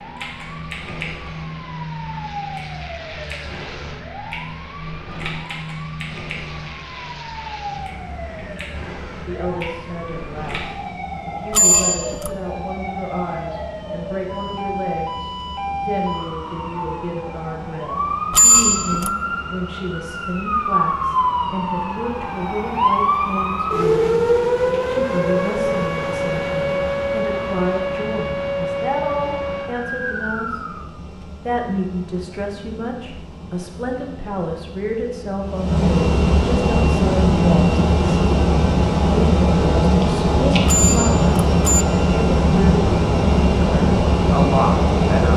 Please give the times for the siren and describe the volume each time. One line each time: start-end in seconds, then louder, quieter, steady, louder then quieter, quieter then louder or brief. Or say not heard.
0.0-30.8 louder.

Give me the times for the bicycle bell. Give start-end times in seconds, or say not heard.
11.5-12.3, 18.3-19.1, 40.6-41.9.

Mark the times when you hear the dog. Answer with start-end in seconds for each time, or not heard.
not heard.